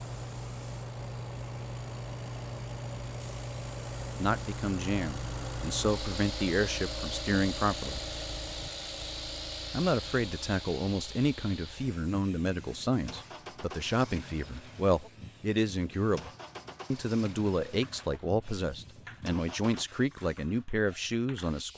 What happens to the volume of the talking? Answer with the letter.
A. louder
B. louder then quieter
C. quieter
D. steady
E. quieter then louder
D.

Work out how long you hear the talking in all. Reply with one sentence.
You can hear the talking for 15 seconds altogether.